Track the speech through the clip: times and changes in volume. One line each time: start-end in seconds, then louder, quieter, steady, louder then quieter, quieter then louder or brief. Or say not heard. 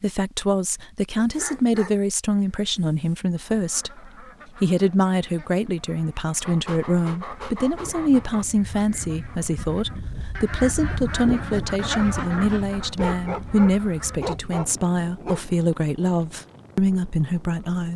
0.0-17.9 steady.